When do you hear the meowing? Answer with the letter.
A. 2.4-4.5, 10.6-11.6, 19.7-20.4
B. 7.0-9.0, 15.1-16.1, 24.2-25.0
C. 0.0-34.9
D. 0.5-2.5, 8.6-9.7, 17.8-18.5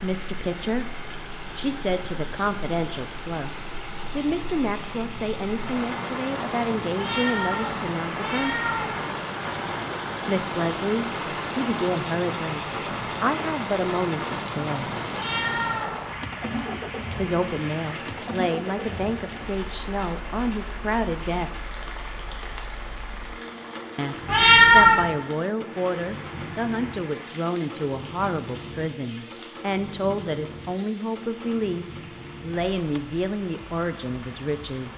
B.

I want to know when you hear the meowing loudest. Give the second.
25 s.